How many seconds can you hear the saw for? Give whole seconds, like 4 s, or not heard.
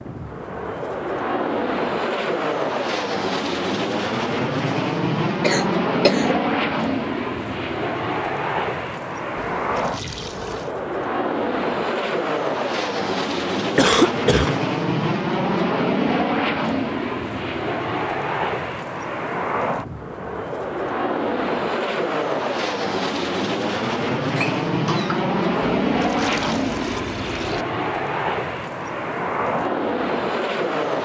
not heard.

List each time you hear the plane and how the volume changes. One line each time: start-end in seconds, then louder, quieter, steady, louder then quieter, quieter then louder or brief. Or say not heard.
0.0-31.0 steady.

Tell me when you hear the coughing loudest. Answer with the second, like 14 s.
14 s.